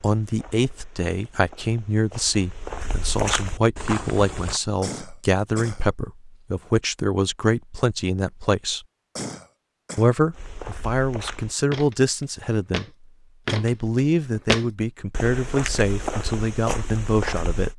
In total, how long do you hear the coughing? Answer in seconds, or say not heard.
2 s.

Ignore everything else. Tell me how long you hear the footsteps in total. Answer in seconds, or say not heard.
12 s.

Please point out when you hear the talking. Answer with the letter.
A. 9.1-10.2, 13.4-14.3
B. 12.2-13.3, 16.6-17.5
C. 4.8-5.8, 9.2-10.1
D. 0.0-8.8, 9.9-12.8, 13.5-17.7
D.